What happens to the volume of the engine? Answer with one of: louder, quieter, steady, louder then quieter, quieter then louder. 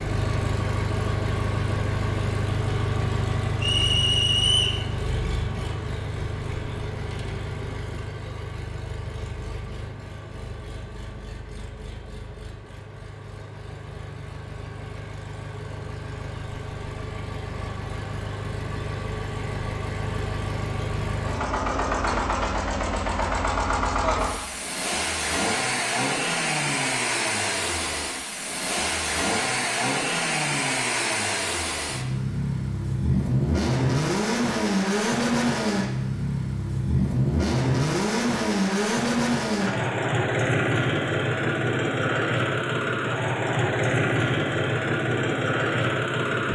quieter then louder.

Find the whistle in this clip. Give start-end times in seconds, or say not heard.
3.6-4.8.